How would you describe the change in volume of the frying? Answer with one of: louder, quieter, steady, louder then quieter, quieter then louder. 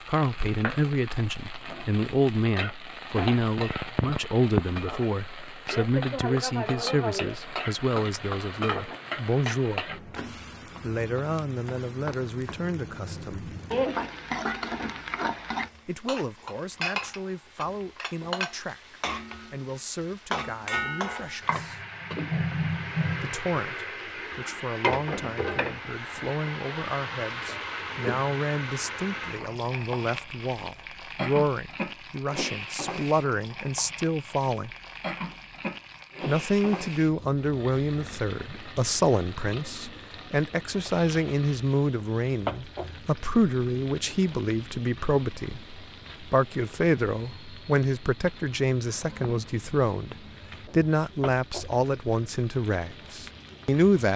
quieter.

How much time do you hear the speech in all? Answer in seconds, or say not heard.
48 s.